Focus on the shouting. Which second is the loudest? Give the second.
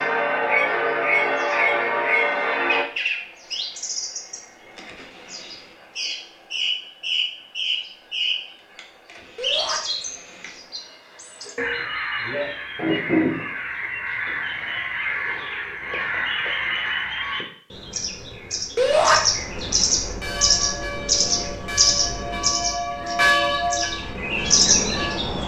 19 s.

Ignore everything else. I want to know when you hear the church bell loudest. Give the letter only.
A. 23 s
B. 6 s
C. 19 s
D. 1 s
A.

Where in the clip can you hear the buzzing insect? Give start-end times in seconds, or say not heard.
not heard.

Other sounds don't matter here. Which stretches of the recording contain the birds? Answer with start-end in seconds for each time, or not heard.
0.0-25.4.